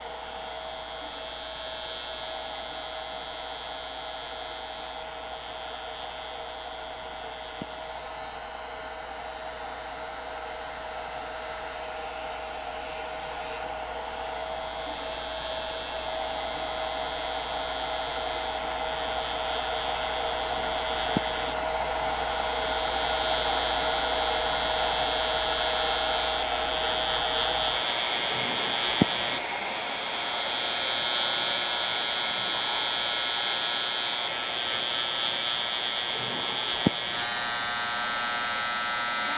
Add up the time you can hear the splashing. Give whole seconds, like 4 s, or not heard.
not heard.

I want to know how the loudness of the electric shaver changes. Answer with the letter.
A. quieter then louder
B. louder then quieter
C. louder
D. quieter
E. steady
C.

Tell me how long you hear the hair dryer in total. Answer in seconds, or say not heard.
39 s.